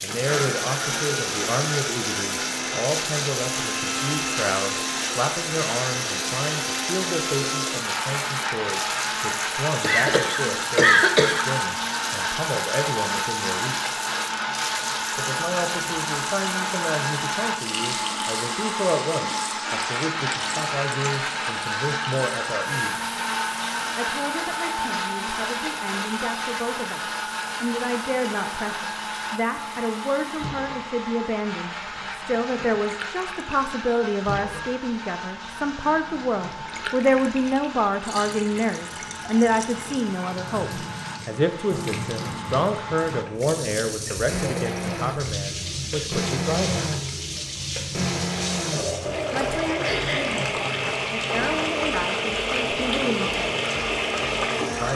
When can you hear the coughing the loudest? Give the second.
11 s.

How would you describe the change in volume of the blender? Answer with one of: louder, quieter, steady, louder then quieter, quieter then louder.
quieter then louder.